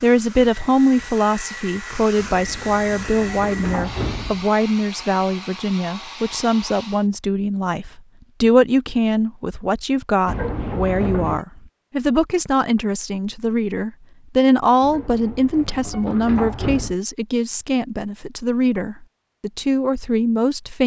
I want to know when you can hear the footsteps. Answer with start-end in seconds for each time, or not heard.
not heard.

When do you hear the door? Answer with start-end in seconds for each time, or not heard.
2.1-4.5, 10.2-11.4, 14.8-16.9.